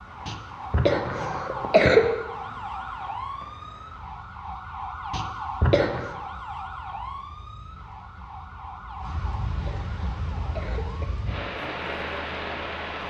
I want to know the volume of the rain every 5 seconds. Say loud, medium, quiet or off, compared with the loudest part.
quiet, medium, loud.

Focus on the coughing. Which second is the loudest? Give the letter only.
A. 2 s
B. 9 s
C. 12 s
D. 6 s
A.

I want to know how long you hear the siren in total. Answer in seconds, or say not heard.
13 s.